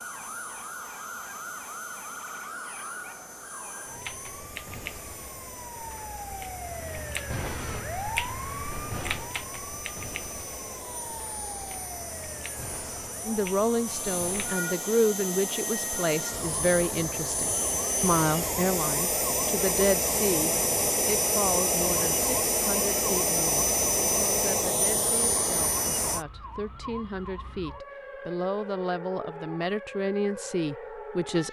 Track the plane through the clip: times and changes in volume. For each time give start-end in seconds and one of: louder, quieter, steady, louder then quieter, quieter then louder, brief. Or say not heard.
0.0-26.2 louder.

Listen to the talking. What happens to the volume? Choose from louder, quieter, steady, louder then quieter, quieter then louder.
quieter then louder.